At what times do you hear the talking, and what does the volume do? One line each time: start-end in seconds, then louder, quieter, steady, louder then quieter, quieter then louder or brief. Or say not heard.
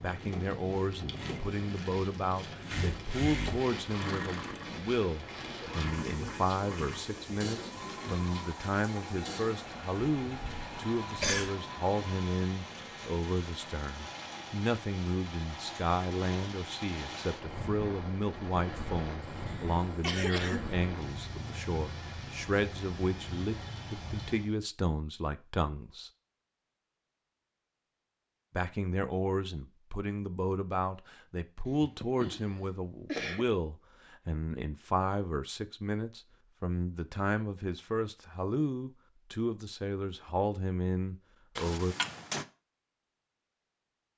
0.0-26.1 steady
28.5-42.0 steady.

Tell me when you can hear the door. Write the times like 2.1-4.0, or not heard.
41.5-42.5.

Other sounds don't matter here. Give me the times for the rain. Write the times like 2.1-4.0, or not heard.
0.0-24.6.